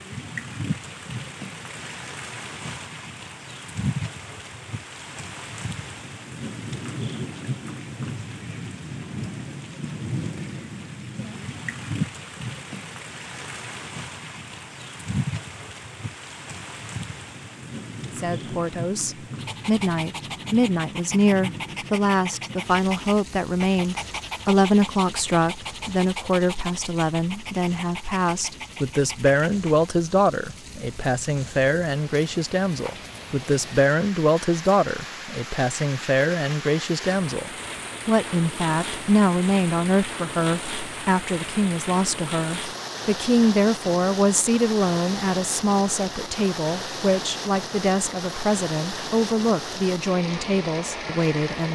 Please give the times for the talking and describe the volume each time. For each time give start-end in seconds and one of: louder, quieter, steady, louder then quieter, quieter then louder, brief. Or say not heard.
18.1-51.7 steady.